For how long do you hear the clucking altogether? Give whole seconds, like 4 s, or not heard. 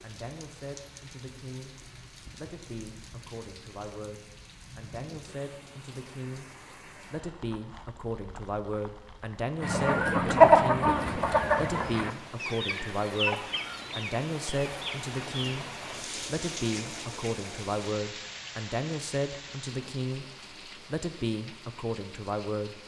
6 s.